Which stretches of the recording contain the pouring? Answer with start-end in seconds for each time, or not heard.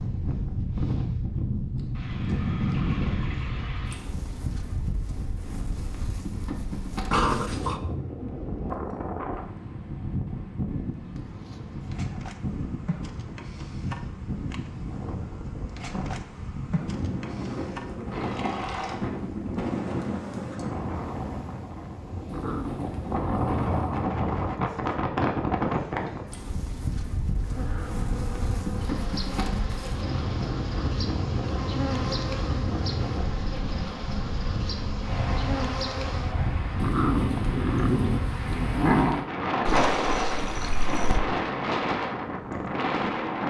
1.9-4.0, 18.1-19.0, 39.6-41.2.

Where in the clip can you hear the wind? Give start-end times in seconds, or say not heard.
0.0-43.4.